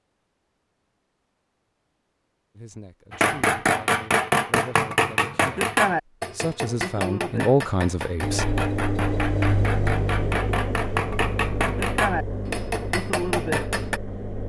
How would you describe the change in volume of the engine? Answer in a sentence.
The volume of the engine goes down.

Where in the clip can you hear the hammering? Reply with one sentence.
You can hear the hammering from 3.1 to 14.0 s.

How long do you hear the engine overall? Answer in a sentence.
The engine can be heard for 6 seconds in total.